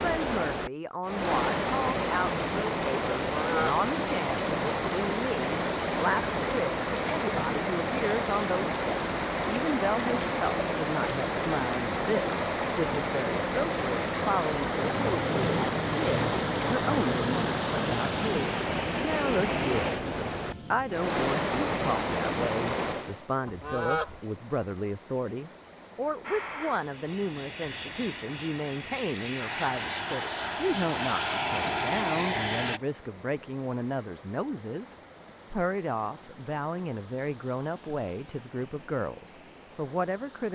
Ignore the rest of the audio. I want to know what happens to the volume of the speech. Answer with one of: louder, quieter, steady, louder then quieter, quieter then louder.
steady.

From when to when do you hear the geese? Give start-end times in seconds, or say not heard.
3.2-3.9, 23.4-24.2.